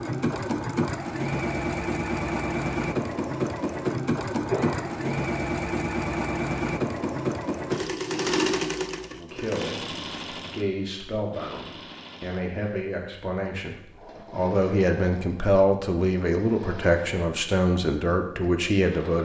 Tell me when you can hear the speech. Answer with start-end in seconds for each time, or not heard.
9.1-19.2.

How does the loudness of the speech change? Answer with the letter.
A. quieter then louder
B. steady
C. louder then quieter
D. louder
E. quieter
D.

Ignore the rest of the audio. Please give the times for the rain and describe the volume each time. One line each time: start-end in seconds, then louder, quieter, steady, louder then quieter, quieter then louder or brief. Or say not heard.
not heard.